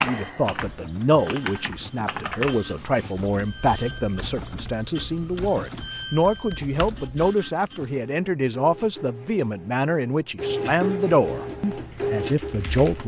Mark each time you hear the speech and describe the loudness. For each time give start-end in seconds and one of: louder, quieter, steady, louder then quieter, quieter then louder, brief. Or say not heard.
0.0-13.0 steady.